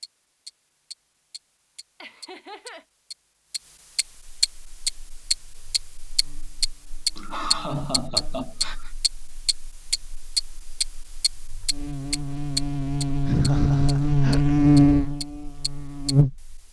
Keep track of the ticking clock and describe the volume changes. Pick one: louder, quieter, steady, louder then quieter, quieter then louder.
louder then quieter.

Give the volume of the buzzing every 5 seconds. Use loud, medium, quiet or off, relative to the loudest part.
off, quiet, loud, loud.